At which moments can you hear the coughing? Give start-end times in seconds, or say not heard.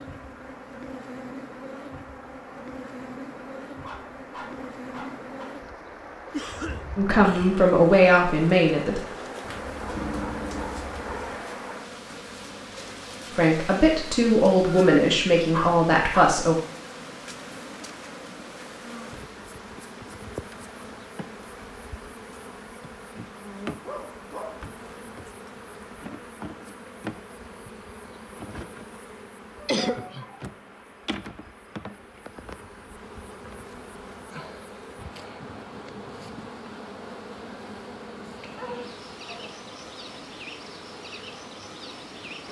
6.3-7.7, 29.6-30.2.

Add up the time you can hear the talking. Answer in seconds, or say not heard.
5 s.